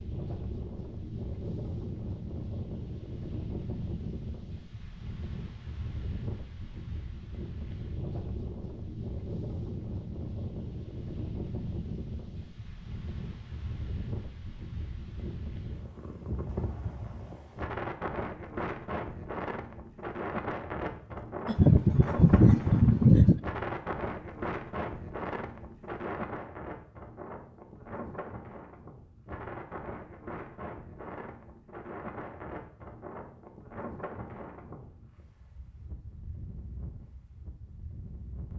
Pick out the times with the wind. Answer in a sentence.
You can hear the wind from 0.0 to 38.5 s.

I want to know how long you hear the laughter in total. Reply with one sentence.
The laughter can be heard for 2 seconds in total.